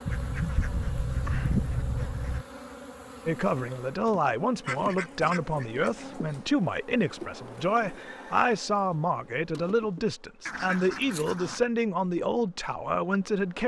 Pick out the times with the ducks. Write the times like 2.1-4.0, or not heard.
0.1-2.5, 4.7-6.5, 10.4-11.6.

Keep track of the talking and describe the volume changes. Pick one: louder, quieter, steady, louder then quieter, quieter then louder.
steady.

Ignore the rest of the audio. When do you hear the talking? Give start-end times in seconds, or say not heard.
3.2-13.6.